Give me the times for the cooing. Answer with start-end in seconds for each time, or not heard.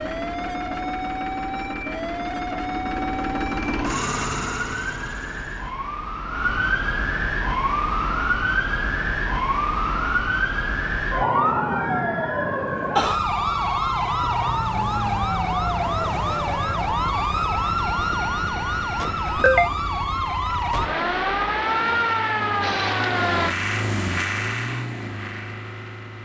not heard.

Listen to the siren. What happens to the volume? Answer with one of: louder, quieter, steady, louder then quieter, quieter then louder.
louder.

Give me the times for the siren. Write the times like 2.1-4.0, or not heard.
0.0-23.6.